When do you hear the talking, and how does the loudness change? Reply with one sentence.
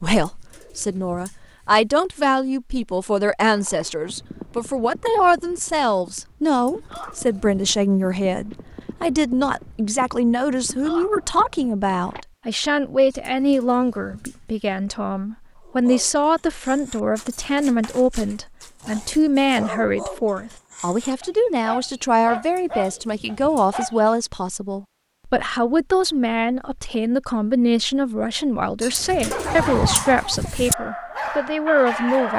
You can hear the talking from 0.0 to 32.3 s, at a steady volume.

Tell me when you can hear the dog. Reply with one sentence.
The dog can be heard from 15.6 to 24.0 s and from 29.3 to 32.3 s.